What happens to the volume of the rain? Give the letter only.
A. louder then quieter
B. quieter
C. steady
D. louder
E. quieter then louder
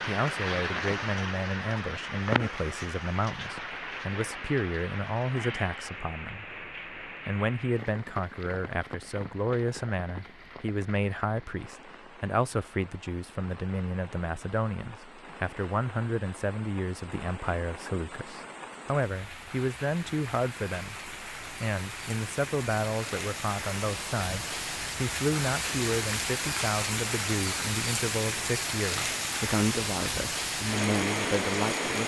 E.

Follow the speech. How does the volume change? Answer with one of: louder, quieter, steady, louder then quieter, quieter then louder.
steady.